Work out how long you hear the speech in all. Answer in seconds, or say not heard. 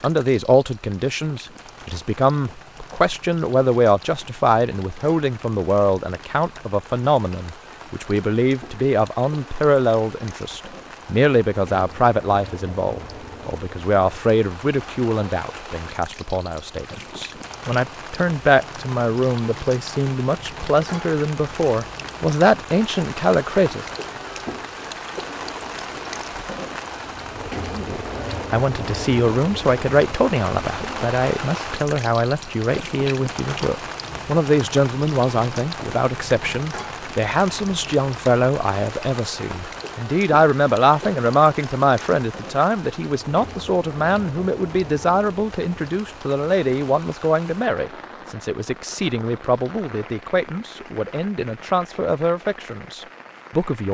50 s.